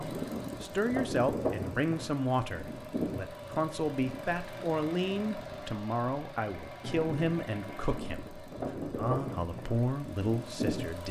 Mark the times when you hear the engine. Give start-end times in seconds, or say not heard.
0.0-11.0.